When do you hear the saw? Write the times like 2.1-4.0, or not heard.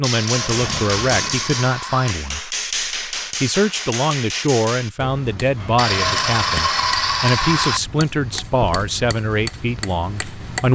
0.1-2.1, 5.8-7.8.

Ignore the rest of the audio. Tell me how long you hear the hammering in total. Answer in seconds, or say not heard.
11 s.